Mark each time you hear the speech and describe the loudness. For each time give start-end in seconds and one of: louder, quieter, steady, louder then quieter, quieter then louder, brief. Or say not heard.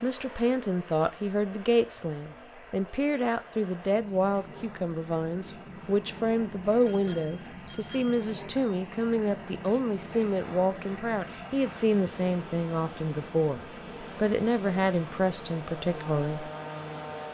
0.0-16.5 steady.